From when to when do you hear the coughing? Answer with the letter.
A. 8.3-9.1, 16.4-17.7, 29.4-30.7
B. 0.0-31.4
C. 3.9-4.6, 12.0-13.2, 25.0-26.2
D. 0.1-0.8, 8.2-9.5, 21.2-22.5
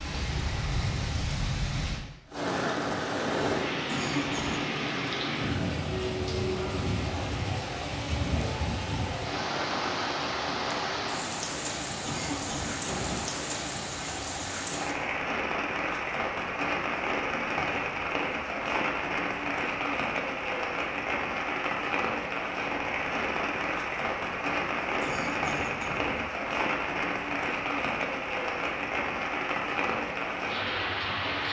C.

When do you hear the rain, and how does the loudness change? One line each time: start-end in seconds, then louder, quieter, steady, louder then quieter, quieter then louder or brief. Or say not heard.
0.0-31.4 steady.